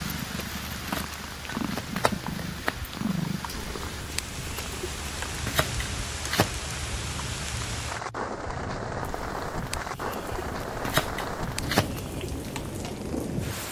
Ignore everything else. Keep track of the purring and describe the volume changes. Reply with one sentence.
The loudness of the purring goes down.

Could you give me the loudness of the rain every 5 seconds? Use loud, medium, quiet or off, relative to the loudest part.
medium, loud, loud.